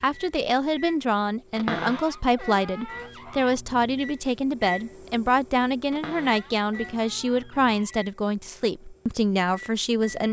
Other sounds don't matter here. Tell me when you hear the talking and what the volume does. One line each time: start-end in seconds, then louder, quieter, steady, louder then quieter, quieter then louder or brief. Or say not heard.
0.0-10.2 steady.